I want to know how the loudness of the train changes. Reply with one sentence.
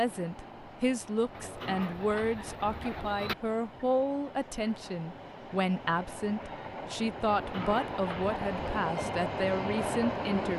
The volume of the train goes up.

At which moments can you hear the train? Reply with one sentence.
The train can be heard from 0.0 to 10.5 s.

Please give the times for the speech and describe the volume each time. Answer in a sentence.
You can hear the speech from 0.0 to 10.5 s, at a steady volume.